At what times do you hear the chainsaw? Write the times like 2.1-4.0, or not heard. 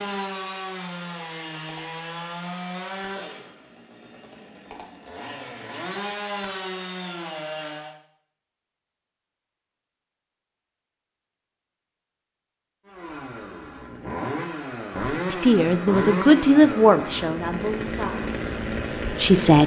0.0-8.0, 12.8-19.6.